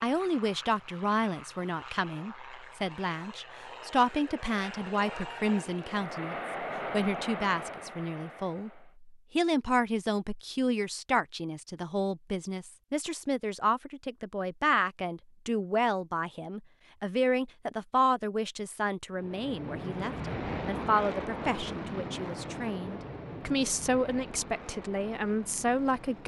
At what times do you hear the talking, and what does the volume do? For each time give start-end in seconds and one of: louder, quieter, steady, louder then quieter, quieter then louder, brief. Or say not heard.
0.0-26.2 steady.